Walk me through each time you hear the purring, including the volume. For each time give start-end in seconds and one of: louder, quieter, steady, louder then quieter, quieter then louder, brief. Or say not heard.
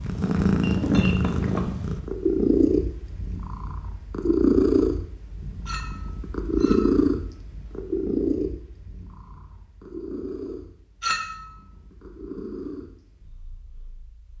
0.0-14.3 quieter.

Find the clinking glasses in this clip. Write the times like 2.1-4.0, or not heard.
0.6-1.8, 5.7-7.0, 11.0-11.5.